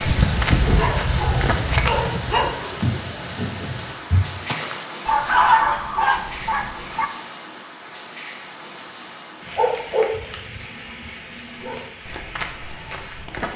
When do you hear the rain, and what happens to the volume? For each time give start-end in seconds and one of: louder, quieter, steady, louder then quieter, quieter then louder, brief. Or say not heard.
0.0-13.5 quieter.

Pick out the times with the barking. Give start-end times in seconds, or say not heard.
0.1-2.5, 5.0-7.0, 9.6-11.8.